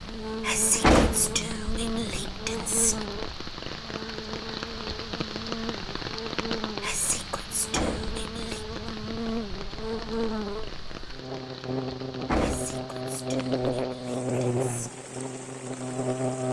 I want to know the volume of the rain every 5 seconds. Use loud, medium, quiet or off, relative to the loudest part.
loud, loud, medium, medium.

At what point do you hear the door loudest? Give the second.
1 s.